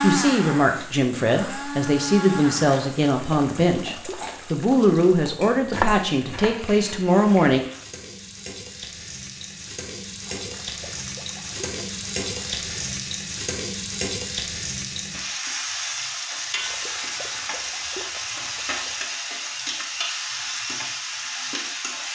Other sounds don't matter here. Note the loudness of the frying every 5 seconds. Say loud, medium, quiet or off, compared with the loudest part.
quiet, medium, loud, loud, loud.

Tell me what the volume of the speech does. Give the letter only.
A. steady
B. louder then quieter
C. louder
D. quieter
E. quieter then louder
A.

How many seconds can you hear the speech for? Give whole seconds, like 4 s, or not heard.
8 s.